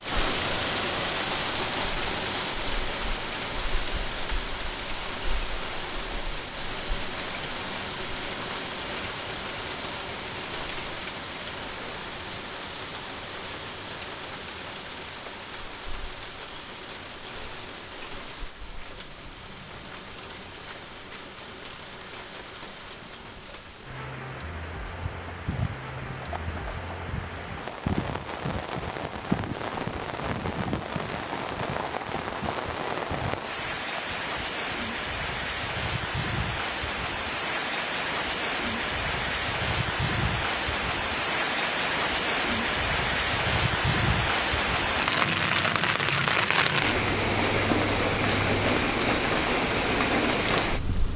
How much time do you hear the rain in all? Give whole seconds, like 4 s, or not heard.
51 s.